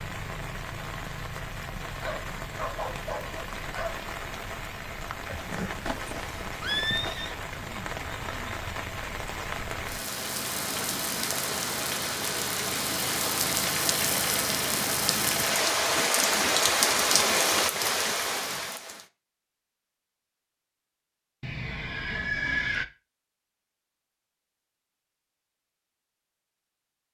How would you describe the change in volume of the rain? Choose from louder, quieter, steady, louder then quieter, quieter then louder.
louder.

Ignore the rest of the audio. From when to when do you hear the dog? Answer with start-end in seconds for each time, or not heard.
2.0-4.0.